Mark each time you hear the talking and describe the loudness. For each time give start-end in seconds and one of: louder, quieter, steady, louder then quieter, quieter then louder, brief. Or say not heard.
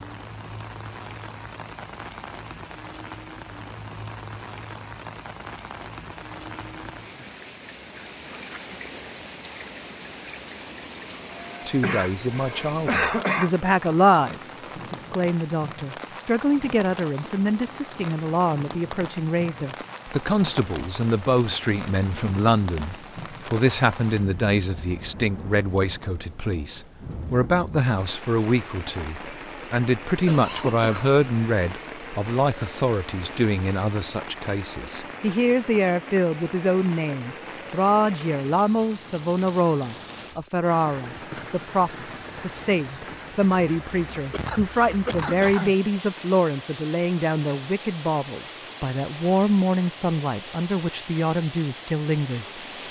11.7-52.5 steady.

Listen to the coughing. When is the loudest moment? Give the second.
13 s.